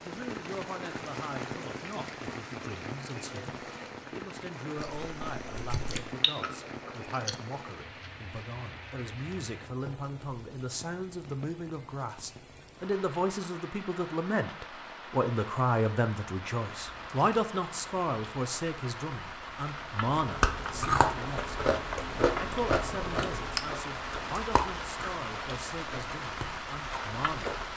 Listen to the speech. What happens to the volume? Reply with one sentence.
The loudness of the speech goes up, then down.